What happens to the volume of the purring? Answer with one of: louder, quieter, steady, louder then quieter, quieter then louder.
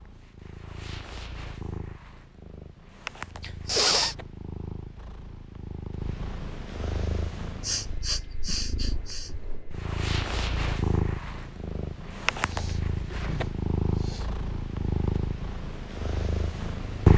louder.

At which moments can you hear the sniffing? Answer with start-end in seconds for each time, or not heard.
3.4-4.2, 7.6-9.3, 12.3-14.4.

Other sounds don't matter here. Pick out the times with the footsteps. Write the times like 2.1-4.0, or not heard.
not heard.